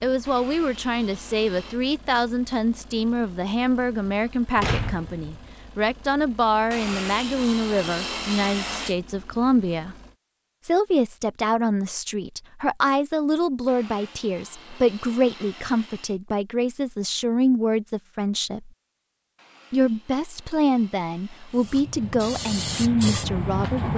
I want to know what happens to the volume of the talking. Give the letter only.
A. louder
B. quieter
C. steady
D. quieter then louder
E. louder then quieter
C.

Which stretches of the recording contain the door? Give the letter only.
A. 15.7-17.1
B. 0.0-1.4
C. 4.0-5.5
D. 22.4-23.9
C.